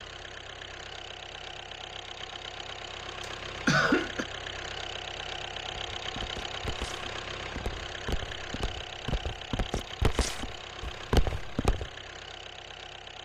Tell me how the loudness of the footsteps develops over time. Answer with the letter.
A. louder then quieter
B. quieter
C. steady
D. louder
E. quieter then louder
D.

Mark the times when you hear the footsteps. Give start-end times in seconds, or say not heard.
5.7-11.9.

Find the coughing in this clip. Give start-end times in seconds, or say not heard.
3.2-4.2.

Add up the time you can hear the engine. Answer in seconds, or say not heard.
13 s.